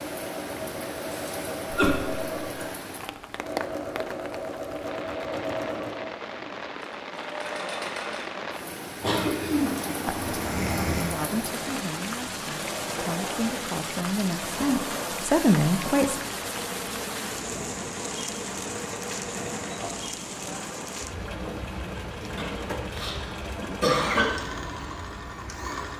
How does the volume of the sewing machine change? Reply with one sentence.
The loudness of the sewing machine stays about the same.